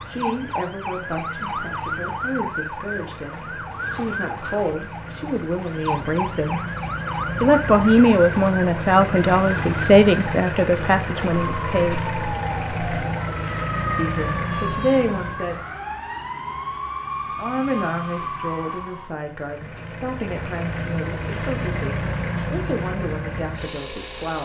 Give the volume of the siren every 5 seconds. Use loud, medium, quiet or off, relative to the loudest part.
loud, loud, loud, loud, off.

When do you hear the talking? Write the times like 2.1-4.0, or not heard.
0.1-6.6, 7.4-12.0, 13.9-15.7, 17.4-24.4.